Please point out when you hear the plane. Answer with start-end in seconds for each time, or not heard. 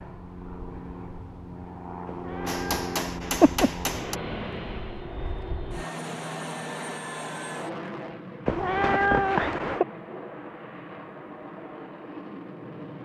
0.0-13.0.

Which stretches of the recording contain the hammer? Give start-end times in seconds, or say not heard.
2.5-4.2.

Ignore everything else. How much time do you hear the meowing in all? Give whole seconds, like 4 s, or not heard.
3 s.